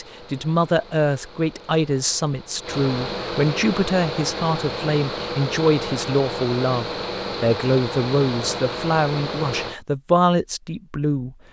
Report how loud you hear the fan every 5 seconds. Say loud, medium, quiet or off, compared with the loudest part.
loud, loud, off.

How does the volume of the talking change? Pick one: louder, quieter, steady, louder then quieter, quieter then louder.
steady.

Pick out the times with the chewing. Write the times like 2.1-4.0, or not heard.
not heard.